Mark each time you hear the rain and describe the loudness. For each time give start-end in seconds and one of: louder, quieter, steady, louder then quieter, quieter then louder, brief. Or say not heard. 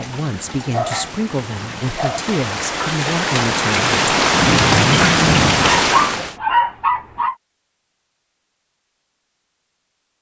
0.0-6.3 louder.